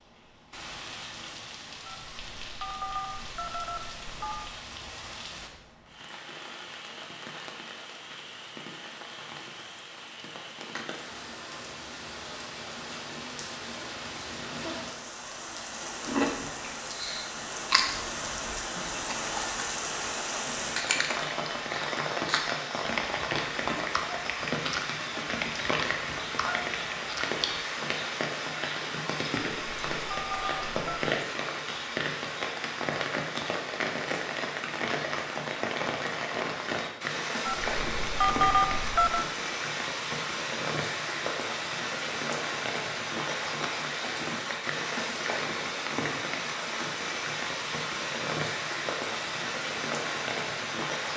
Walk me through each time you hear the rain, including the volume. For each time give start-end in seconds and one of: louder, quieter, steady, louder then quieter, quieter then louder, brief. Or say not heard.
0.0-51.1 louder.